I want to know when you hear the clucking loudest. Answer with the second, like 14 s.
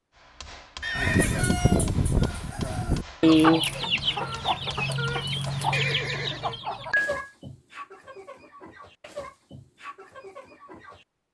3 s.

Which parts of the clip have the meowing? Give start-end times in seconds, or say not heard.
not heard.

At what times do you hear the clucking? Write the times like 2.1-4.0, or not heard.
0.9-11.1.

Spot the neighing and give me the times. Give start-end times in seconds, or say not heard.
0.8-1.4, 5.7-7.2.